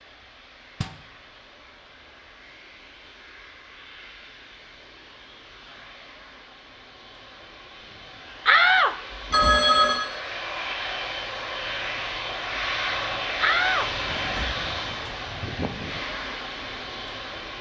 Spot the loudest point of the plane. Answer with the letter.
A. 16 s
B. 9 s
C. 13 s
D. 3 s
C.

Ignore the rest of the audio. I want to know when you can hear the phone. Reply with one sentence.
The phone can be heard from 9.3 to 10.1 s.